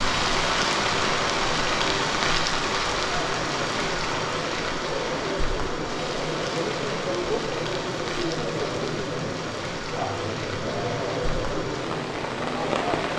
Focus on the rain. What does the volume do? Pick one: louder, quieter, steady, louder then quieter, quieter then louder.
quieter.